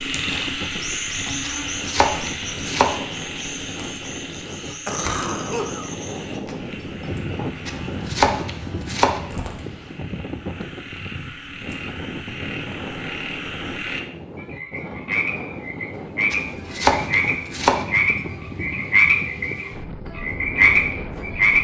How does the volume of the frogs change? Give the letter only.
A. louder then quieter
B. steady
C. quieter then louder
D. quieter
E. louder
C.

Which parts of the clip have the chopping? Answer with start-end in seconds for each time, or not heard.
1.4-3.0, 7.7-9.2, 16.3-17.9.